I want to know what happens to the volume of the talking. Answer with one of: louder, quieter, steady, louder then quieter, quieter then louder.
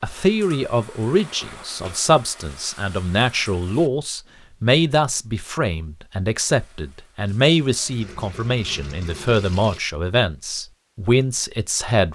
steady.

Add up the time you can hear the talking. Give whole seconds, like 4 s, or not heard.
12 s.